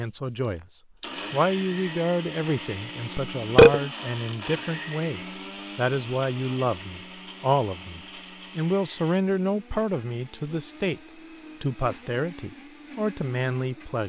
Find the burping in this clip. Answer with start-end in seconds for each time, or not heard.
3.1-3.8.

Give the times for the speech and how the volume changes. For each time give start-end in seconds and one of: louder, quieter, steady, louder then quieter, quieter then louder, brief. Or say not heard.
0.0-0.7 brief
1.3-14.0 steady.